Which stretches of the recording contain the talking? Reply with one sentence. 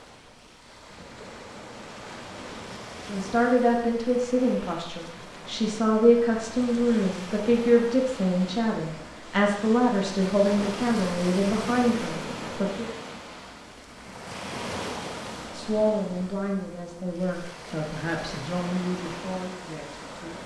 You can hear the talking from 3.0 to 12.9 s and from 15.5 to 20.4 s.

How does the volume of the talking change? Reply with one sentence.
The volume of the talking goes down.